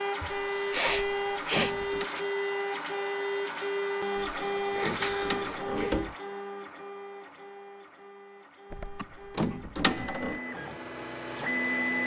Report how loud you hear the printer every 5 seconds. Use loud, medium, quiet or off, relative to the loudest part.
loud, medium, loud.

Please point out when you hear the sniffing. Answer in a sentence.
The sniffing can be heard from 0.2 to 2.2 s, from 4.7 to 6.0 s and from 8.9 to 9.6 s.